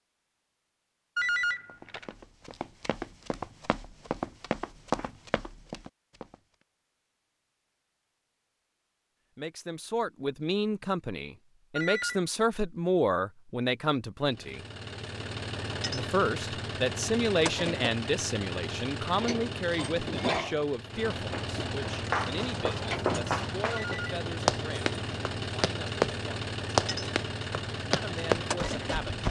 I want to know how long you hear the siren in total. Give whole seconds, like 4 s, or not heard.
not heard.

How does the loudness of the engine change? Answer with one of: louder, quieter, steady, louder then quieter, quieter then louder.
steady.